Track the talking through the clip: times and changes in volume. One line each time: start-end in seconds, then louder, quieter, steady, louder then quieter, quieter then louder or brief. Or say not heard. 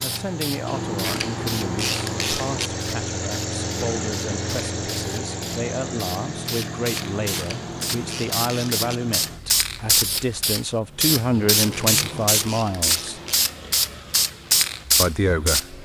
0.0-13.2 louder
15.0-15.8 brief.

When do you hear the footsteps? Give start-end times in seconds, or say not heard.
not heard.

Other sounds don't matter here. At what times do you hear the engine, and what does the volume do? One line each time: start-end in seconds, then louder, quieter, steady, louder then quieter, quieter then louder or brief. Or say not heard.
0.0-15.8 quieter.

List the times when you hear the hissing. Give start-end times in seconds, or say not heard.
0.0-15.7.